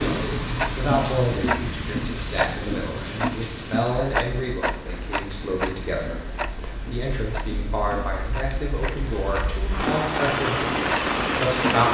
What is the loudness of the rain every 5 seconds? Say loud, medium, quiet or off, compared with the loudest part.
medium, quiet, loud.